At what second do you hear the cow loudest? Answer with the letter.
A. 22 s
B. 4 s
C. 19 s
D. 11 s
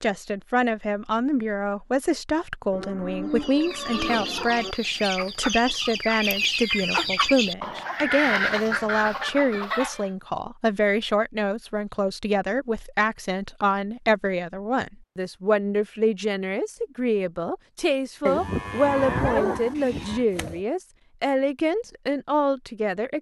C.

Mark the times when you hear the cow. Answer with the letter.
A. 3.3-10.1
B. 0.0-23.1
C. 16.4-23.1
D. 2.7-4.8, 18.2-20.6
D.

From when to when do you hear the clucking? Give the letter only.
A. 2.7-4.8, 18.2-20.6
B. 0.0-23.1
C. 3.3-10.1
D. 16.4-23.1
C.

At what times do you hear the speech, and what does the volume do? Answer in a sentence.
You can hear the speech from 0.0 to 23.1 s, at a steady volume.